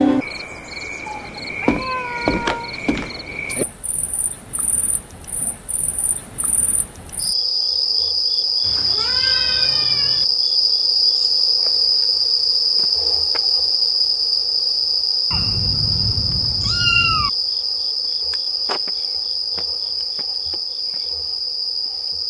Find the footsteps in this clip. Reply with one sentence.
The footsteps can't be heard in this clip.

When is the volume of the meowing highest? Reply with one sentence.
The volume of the meowing peaks at 17 seconds.